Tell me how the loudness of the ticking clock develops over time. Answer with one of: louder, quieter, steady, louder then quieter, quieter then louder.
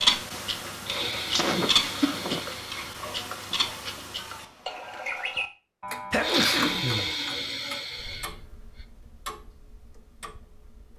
quieter.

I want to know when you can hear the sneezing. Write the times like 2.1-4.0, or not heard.
1.3-2.5, 6.1-7.2.